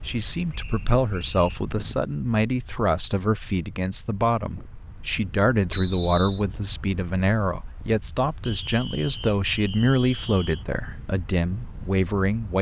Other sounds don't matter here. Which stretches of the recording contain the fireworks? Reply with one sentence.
You can't hear the fireworks here.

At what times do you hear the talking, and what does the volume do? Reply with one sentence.
The talking can be heard from 0.0 to 12.5 s, at a steady volume.